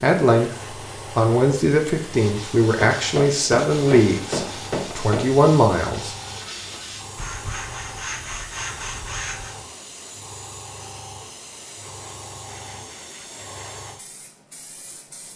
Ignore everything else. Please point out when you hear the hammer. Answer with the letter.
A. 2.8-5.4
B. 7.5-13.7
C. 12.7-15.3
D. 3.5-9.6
A.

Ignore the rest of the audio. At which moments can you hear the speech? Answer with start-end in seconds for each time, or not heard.
0.0-6.2.